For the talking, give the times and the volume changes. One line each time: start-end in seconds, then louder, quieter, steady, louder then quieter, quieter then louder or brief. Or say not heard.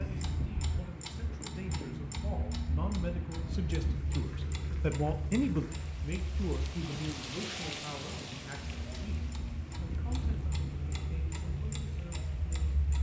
0.0-12.8 louder then quieter.